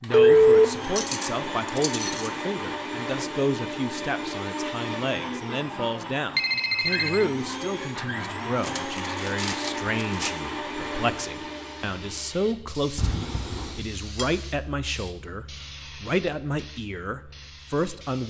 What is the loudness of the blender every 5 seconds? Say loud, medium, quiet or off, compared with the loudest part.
loud, loud, loud, off.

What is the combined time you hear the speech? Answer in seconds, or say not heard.
18 s.